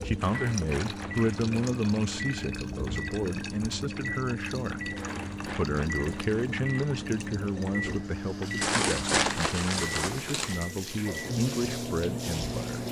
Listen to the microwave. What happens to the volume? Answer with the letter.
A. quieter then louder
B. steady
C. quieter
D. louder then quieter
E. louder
B.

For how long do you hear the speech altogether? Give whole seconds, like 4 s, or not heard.
13 s.